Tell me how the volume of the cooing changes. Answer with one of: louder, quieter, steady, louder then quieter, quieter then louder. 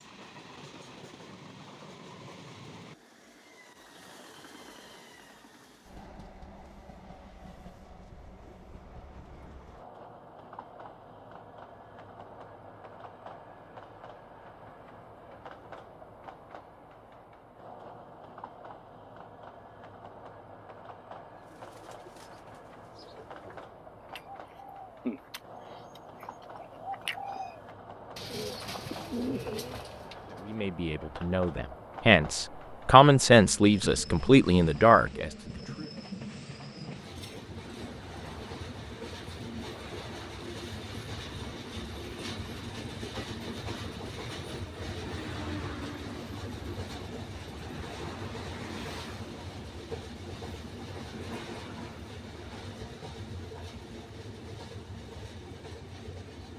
louder.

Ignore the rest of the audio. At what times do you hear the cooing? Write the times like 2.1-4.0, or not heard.
21.3-30.5.